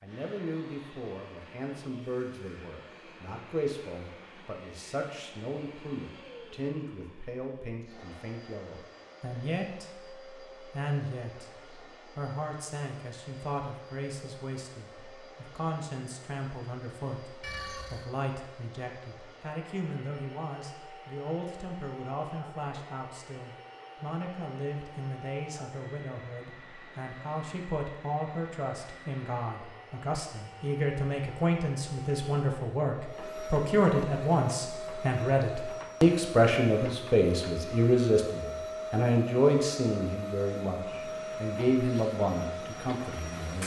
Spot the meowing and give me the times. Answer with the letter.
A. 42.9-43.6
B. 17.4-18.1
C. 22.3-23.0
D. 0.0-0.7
B.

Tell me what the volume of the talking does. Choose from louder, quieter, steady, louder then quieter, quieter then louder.
louder.